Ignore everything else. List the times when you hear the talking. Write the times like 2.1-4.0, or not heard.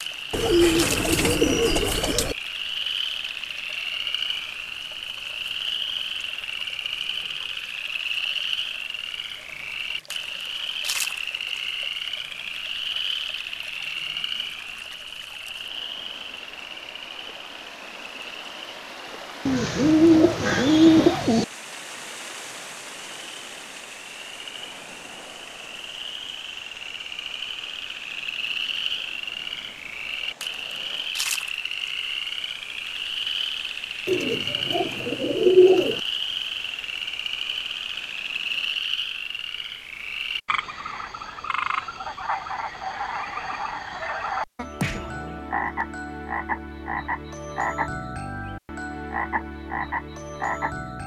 not heard.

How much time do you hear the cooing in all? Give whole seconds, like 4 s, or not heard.
6 s.